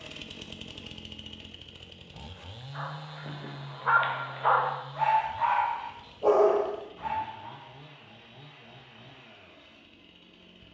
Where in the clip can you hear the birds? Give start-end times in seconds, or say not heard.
not heard.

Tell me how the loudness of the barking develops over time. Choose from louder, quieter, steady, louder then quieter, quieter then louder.
louder.